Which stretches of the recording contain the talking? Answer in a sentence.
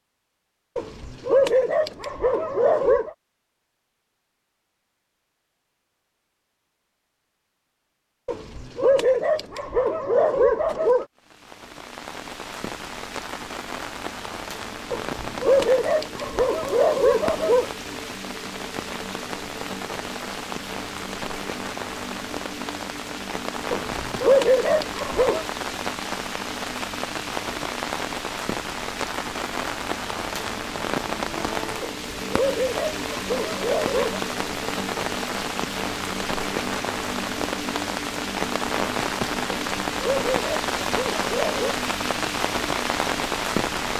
You can't hear the talking here.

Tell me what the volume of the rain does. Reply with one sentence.
The volume of the rain goes up.